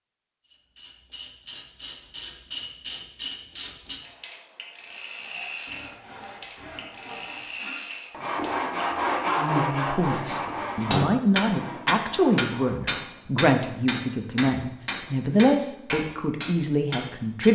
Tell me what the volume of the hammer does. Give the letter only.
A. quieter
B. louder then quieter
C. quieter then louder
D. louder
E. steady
A.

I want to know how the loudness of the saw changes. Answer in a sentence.
The loudness of the saw goes up, then down.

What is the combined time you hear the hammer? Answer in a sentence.
The hammer can be heard for 7 seconds in total.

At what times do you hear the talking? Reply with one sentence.
The talking can be heard from 9.3 to 17.4 s.